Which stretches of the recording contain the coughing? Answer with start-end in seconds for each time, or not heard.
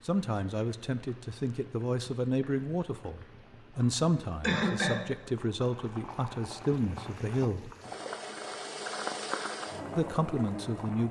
4.4-5.0.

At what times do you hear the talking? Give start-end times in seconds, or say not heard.
0.1-7.7, 9.9-11.0.